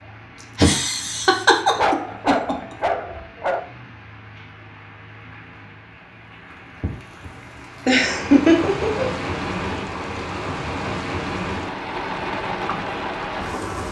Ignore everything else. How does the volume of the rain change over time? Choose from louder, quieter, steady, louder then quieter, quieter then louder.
louder.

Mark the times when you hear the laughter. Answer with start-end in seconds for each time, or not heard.
0.6-2.5, 7.8-9.1.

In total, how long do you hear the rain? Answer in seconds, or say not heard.
14 s.